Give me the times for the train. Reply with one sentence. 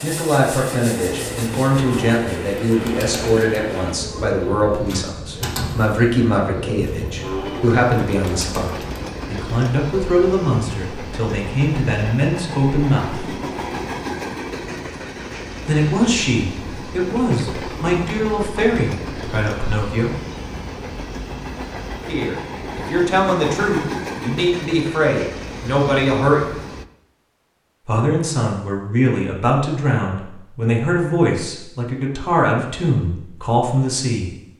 The train can be heard from 0.0 to 26.9 s.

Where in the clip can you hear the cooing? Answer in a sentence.
You can hear the cooing from 1.0 to 9.1 s.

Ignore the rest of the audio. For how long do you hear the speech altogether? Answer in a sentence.
You can hear the speech for 29 seconds altogether.